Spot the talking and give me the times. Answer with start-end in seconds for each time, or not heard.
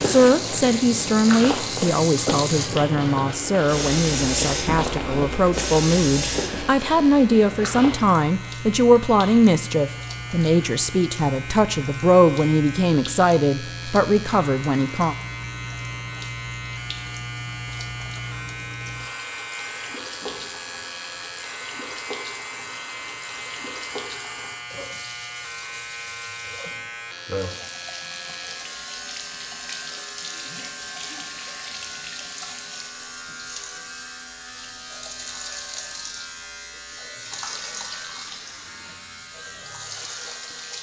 0.0-15.2.